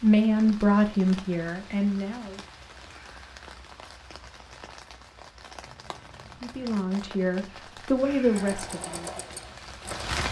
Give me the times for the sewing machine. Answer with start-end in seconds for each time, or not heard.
8.3-10.2.